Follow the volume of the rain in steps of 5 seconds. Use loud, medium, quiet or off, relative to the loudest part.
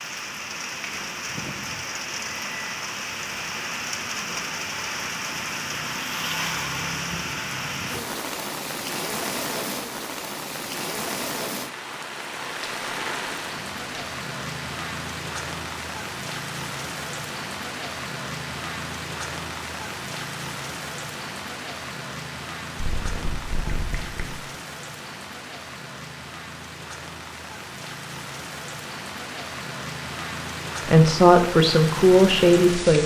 loud, loud, loud, loud, medium, medium, loud.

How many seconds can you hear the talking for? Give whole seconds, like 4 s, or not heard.
2 s.